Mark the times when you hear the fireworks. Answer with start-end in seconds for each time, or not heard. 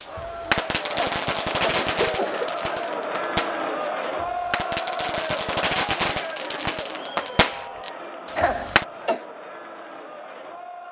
0.0-8.8.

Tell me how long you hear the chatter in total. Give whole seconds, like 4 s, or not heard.
11 s.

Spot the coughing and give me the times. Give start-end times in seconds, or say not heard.
0.9-2.5, 8.3-9.2.